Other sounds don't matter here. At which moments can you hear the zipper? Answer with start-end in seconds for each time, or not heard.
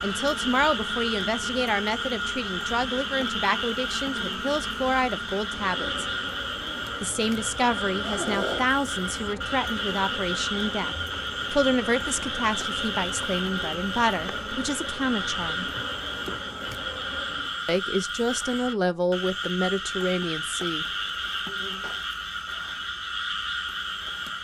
8.0-8.8, 21.7-22.8.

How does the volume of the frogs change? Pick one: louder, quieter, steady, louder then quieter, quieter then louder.
steady.